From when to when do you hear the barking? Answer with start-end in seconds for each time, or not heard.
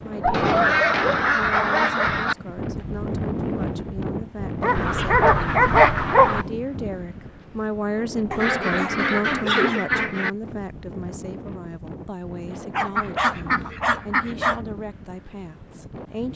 0.2-1.9, 4.6-6.4, 8.3-9.8, 12.7-14.6.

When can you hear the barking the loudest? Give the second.
6 s.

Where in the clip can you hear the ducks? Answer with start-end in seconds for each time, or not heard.
0.3-2.4, 4.8-6.5, 8.3-10.3, 12.9-14.7.